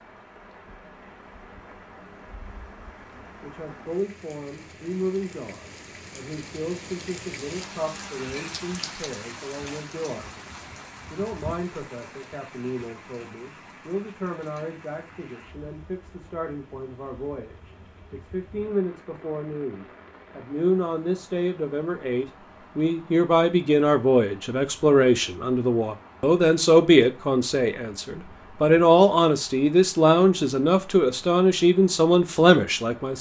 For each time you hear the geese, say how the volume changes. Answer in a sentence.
The geese can't be heard in this clip.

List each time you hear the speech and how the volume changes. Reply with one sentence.
You can hear the speech from 3.2 to 33.1 s, getting louder.